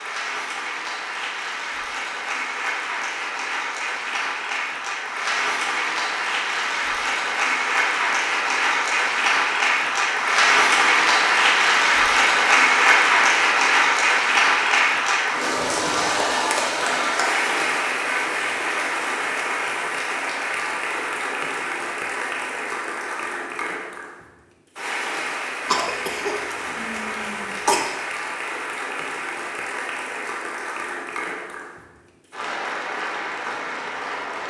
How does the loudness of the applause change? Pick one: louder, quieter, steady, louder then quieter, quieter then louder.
louder then quieter.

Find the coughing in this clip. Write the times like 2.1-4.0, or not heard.
25.6-27.9.